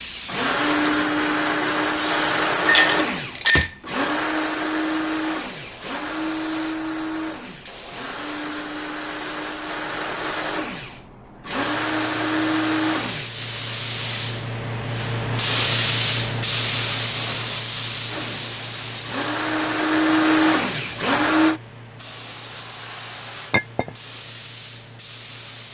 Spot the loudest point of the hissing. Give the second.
16 s.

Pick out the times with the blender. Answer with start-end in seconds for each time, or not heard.
0.2-13.3, 18.1-21.6.